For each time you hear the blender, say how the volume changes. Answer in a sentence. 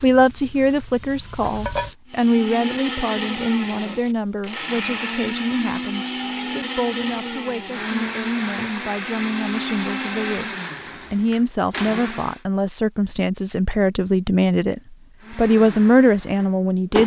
The blender can be heard from 2.1 to 12.4 s, at a steady volume; and briefly from 15.2 to 17.0 s.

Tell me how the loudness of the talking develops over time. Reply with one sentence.
The volume of the talking goes down, then up.